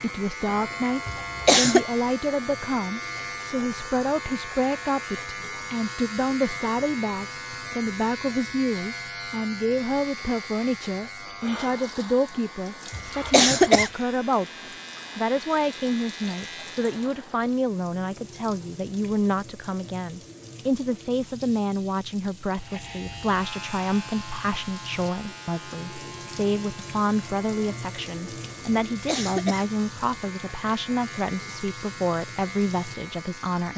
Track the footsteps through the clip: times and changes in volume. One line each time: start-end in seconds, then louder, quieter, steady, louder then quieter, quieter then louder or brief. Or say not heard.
not heard.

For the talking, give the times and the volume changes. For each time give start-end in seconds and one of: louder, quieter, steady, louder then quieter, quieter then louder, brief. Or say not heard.
0.0-14.5 steady
15.2-33.7 steady.